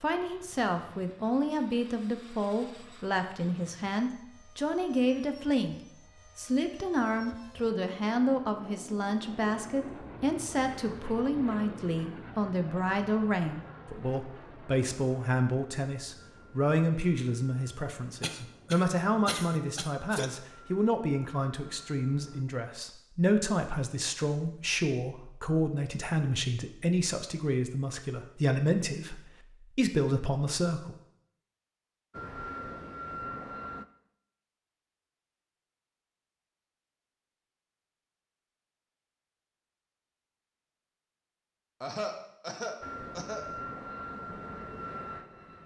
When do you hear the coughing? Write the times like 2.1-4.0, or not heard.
18.2-20.3, 41.8-43.5.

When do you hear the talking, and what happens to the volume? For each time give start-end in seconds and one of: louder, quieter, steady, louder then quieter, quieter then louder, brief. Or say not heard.
0.0-30.9 steady.